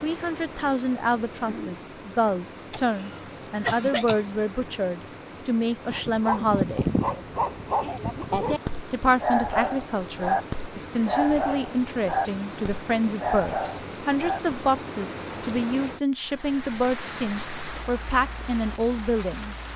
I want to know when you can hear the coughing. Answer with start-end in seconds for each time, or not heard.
2.7-4.2.